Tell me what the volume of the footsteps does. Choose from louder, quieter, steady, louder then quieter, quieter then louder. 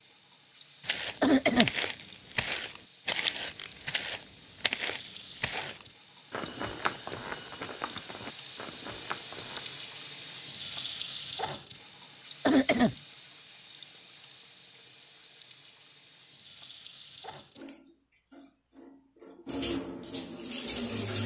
quieter.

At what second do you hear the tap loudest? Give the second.
11 s.